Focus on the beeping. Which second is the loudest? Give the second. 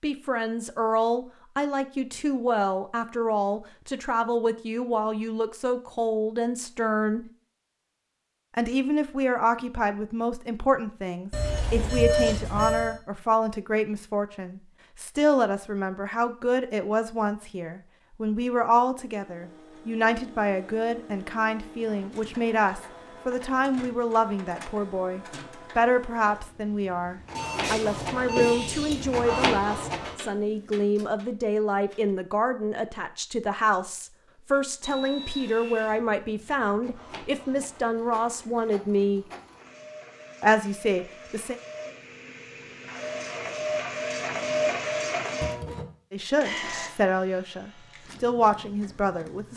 12 s.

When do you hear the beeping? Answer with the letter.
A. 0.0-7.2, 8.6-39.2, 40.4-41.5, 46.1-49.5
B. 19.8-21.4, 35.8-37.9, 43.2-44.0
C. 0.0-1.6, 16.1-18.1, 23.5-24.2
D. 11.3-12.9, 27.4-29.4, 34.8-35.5
D.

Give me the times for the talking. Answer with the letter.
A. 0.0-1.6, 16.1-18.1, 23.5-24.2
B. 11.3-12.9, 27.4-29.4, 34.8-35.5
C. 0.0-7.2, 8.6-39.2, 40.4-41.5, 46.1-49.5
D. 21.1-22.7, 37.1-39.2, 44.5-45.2
C.